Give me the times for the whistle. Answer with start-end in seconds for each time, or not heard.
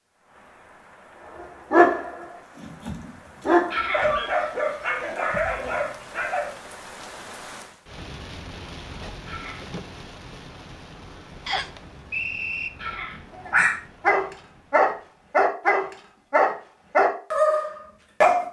11.4-12.7.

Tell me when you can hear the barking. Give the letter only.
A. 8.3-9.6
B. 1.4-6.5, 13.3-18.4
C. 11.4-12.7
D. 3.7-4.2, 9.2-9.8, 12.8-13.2
B.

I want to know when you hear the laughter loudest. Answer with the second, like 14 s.
4 s.